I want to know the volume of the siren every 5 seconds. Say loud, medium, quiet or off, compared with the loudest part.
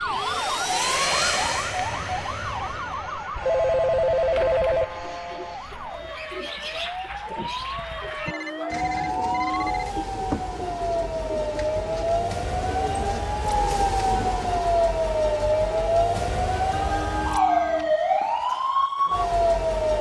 medium, medium, loud, loud.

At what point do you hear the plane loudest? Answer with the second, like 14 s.
1 s.